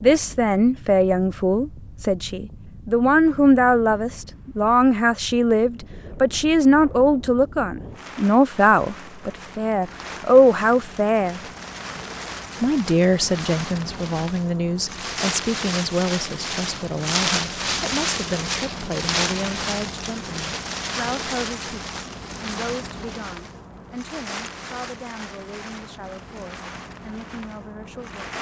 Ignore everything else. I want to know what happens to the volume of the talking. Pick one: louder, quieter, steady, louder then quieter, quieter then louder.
quieter.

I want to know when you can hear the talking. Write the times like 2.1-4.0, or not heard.
0.0-11.4, 12.6-28.3.